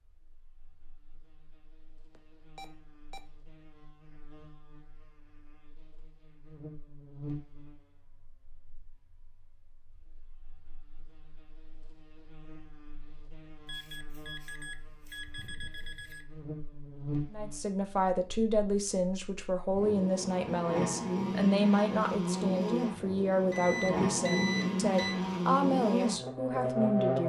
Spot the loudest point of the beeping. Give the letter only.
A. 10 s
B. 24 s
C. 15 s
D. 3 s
B.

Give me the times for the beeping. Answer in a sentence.
You can hear the beeping from 2.1 to 3.2 s, from 13.7 to 16.2 s and from 23.5 to 25.1 s.